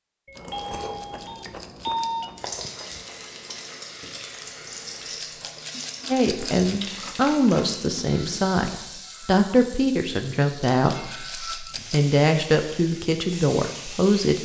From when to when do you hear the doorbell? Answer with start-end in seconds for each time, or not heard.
0.2-2.3.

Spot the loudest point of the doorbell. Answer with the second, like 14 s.
2 s.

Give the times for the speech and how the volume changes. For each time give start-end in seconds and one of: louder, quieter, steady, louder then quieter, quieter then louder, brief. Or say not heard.
6.1-14.3 steady.